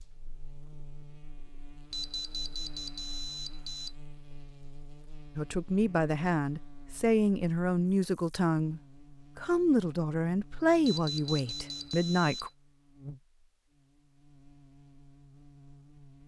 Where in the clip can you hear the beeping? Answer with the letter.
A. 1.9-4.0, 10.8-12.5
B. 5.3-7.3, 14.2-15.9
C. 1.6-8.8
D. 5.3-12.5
A.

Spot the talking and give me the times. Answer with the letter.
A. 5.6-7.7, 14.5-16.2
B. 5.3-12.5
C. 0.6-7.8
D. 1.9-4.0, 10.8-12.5
B.